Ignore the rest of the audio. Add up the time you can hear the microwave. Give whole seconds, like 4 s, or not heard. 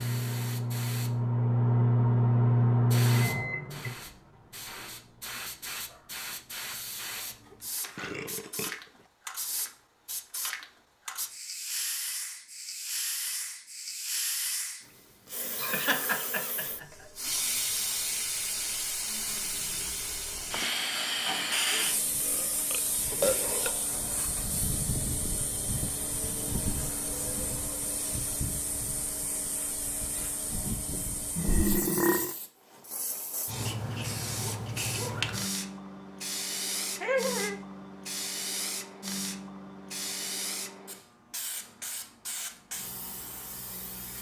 4 s.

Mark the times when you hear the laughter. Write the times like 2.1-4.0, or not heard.
15.6-17.1, 37.0-37.5.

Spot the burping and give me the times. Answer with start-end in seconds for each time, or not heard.
7.5-8.8, 22.2-23.7, 31.4-32.4.